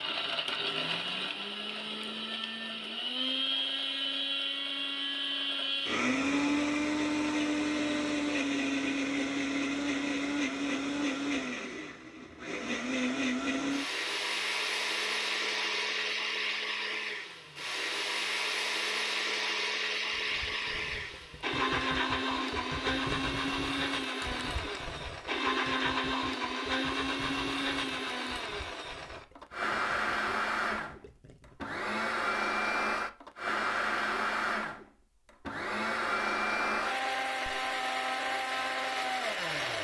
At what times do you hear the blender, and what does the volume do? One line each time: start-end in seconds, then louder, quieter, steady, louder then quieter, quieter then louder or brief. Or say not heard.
0.0-39.7 steady.